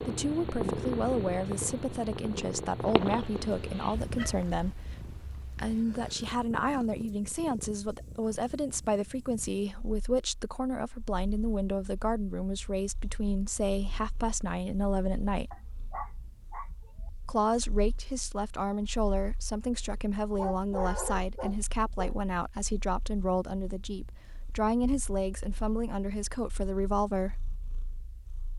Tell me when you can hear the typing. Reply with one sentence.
The typing can't be heard in this clip.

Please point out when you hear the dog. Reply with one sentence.
You can hear the dog from 2.8 to 4.8 s, from 15.5 to 17.1 s and from 20.4 to 22.2 s.